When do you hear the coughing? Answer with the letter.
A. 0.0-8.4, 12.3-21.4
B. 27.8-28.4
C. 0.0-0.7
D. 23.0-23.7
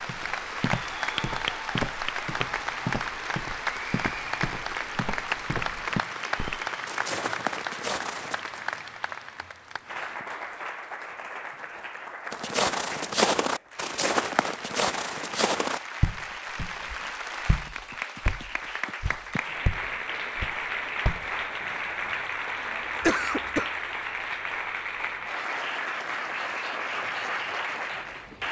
D.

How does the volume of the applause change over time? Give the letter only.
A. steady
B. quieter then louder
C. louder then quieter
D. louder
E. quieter
B.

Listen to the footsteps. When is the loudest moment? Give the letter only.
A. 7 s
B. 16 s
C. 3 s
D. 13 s
D.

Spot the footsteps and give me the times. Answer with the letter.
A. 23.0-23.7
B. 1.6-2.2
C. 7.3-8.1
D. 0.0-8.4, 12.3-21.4
D.